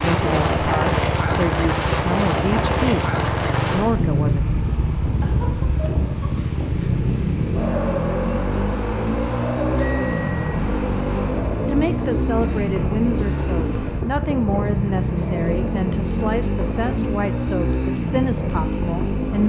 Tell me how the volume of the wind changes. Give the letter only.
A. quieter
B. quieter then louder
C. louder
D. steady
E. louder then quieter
A.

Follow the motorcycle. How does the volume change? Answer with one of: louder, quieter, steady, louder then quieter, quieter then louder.
steady.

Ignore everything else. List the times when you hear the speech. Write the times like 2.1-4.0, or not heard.
0.0-4.4, 11.7-19.4.